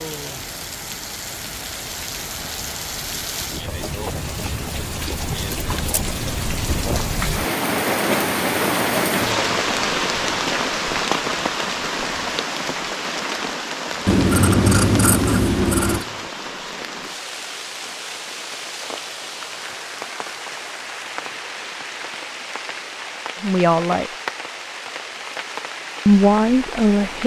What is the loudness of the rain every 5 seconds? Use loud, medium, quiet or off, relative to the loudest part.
medium, loud, loud, medium, medium, medium.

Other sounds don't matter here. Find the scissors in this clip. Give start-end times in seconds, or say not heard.
5.0-6.0, 14.1-16.1.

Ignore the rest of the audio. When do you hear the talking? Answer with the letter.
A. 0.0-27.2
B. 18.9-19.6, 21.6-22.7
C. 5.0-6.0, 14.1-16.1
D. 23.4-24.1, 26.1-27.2
D.